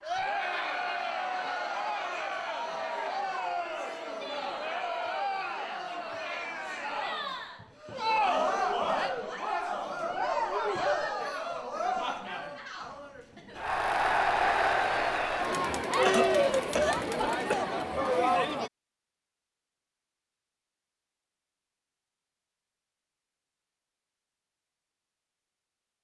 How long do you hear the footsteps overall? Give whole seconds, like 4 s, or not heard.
not heard.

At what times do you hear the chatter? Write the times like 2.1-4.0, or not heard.
0.0-18.7.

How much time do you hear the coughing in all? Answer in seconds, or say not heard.
2 s.